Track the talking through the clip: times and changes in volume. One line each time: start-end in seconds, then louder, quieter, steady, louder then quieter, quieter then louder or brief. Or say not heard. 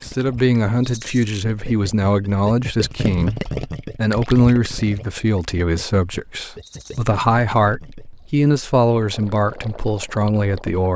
0.0-10.9 steady.